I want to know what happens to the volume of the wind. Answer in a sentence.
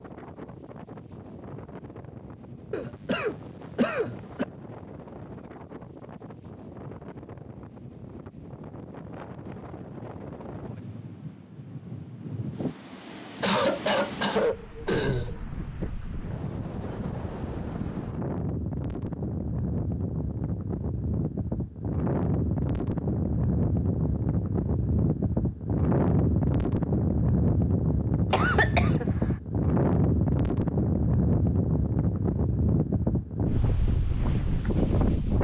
The volume of the wind goes up.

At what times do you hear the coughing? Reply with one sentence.
You can hear the coughing from 2.7 to 4.5 s, from 13.4 to 15.4 s and from 28.3 to 29.4 s.